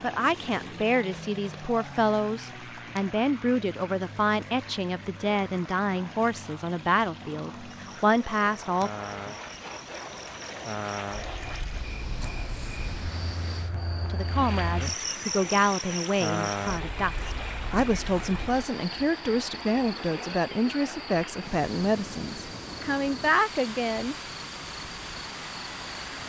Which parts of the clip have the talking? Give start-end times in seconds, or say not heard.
0.0-8.9, 14.1-24.1.